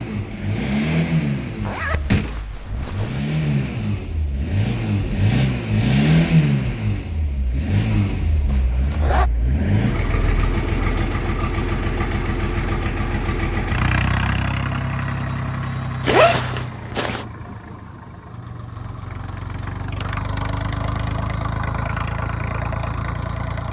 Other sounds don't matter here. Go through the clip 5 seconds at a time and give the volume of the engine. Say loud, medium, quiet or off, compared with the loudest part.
loud, loud, loud, medium, medium.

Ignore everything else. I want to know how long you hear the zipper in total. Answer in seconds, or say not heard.
4 s.